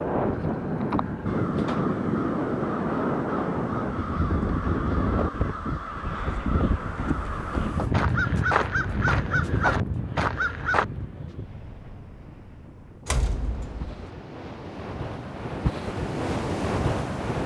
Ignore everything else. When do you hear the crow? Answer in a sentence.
The crow can be heard from 1.2 to 10.8 s.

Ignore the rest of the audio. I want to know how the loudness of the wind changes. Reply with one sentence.
The loudness of the wind goes down, then up.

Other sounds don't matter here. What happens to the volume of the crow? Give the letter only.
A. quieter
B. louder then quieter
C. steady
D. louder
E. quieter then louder
D.